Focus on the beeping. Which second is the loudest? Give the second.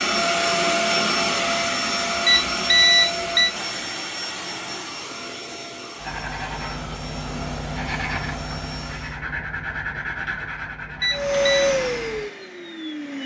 3 s.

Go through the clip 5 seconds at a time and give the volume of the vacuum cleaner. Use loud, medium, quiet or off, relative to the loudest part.
loud, quiet, loud.